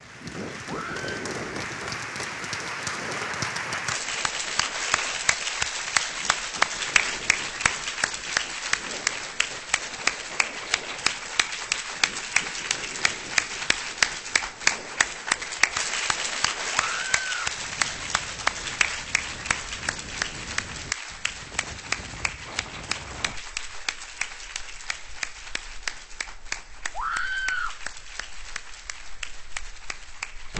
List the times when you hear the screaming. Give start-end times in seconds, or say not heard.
0.7-1.1, 16.7-17.4, 26.9-27.8.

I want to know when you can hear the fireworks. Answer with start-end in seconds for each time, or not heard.
not heard.